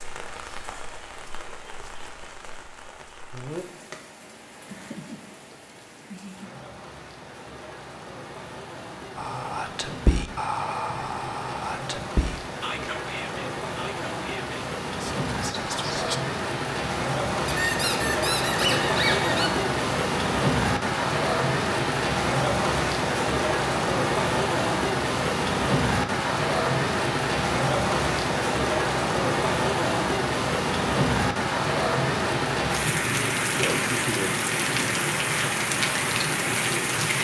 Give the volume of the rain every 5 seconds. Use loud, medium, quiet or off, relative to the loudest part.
quiet, quiet, medium, loud, loud, loud, loud, loud.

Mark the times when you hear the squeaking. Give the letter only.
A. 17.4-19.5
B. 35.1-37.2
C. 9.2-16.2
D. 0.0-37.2
A.